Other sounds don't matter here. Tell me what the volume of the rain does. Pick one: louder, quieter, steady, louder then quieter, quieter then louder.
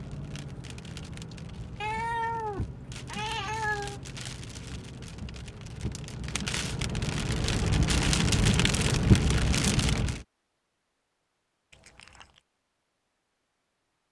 louder.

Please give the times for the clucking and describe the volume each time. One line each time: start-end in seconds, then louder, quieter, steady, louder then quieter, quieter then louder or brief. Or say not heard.
not heard.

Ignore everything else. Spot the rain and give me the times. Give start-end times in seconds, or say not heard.
0.0-10.2.